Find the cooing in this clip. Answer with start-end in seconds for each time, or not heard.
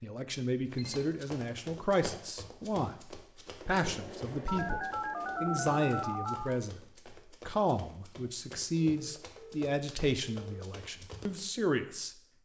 not heard.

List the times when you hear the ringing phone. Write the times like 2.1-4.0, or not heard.
0.2-1.1, 4.5-6.6, 8.8-10.7.